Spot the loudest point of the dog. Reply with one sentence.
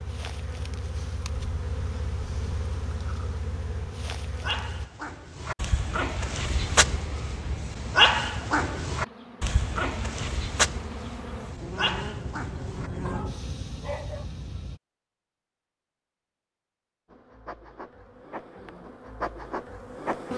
The loudest moment of the dog is at 8 seconds.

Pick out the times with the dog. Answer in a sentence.
You can hear the dog from 4.2 to 14.2 s.